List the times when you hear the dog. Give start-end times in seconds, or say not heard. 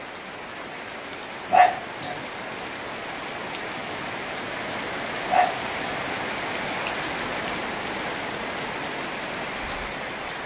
1.5-2.2, 5.3-6.0.